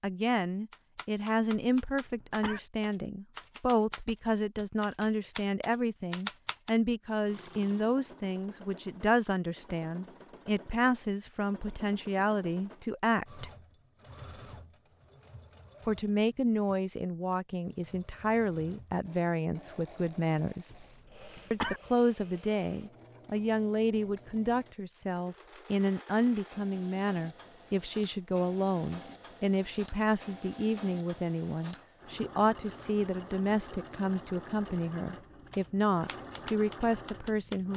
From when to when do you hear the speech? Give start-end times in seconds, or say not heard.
0.0-13.5, 15.8-20.7, 21.5-37.7.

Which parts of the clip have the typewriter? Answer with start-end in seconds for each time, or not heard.
0.7-6.7, 35.5-37.7.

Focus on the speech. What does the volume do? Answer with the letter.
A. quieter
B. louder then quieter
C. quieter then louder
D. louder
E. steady
E.